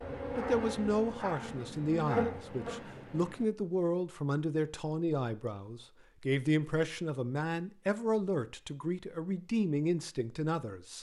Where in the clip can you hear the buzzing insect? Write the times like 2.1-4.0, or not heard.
0.0-3.3.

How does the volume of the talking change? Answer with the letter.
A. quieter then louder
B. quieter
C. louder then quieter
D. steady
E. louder
D.